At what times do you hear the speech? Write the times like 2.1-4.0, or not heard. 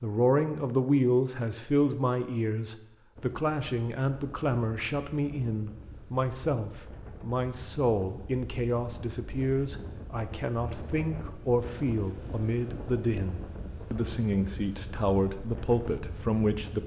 0.0-16.8.